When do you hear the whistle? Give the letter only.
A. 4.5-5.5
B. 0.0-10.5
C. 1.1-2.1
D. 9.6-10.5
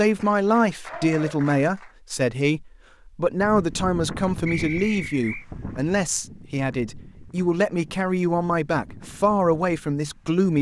A.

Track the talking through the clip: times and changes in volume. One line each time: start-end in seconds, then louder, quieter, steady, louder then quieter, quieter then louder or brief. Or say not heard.
0.0-10.5 steady.